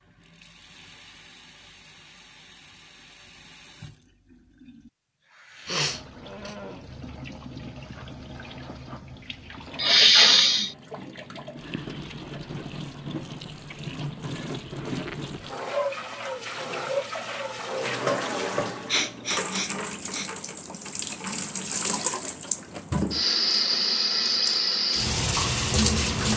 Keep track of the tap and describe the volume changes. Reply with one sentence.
The volume of the tap goes up.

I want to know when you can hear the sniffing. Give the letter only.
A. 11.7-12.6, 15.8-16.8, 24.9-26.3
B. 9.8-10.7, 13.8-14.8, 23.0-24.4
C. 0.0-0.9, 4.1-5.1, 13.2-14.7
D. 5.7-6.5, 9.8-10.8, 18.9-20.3
D.